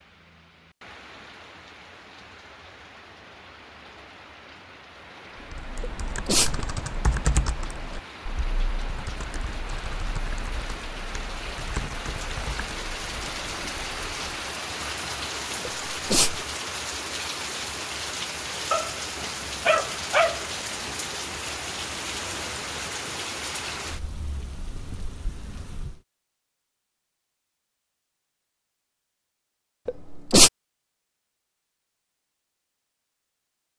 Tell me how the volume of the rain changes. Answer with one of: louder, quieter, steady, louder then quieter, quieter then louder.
louder.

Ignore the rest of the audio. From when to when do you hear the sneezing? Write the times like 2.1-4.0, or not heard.
5.8-6.7, 15.9-16.4, 29.9-30.5.